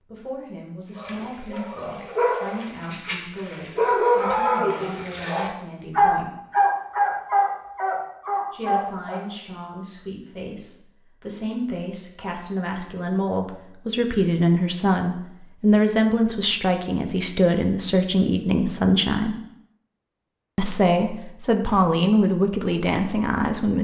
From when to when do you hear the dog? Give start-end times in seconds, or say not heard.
0.9-9.2.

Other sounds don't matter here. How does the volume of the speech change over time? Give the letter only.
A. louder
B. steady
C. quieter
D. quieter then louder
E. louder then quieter
A.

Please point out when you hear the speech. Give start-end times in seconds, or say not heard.
0.1-6.3, 8.5-19.4, 20.6-23.7.